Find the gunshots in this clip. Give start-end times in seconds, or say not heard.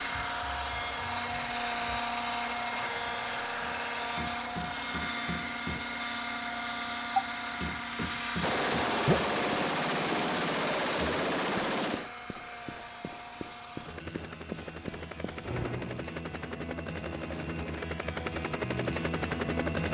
8.4-12.1.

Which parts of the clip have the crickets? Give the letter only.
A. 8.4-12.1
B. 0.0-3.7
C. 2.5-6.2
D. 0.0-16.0
D.